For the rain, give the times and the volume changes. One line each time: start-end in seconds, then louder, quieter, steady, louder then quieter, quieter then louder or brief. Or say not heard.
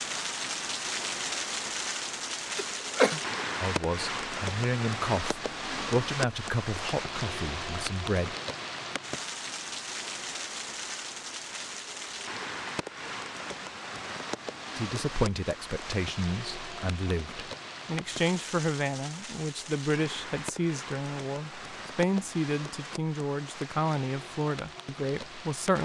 0.0-25.8 quieter.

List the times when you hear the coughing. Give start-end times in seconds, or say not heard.
2.5-3.2.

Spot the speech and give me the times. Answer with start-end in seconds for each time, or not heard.
3.6-8.3, 14.8-25.8.